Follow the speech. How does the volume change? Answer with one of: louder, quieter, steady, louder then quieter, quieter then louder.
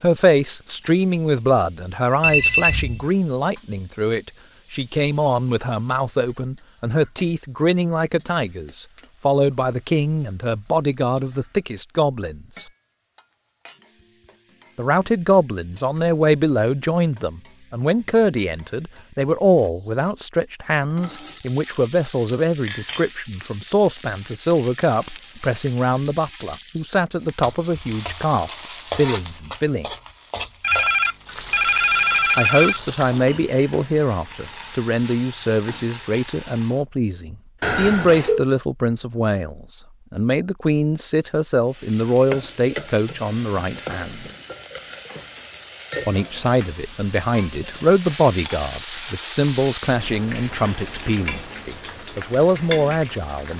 steady.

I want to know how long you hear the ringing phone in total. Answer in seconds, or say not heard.
4 s.